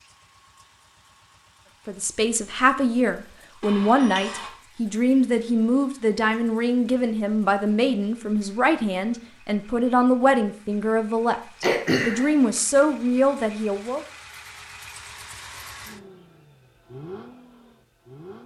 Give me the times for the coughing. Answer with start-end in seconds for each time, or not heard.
11.6-12.6.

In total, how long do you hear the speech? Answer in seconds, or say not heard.
12 s.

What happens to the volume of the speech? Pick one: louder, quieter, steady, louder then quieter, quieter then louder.
steady.